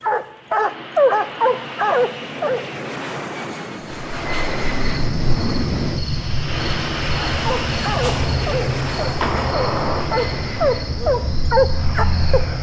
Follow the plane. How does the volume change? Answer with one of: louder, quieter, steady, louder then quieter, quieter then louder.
louder then quieter.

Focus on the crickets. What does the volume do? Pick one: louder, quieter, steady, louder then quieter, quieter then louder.
steady.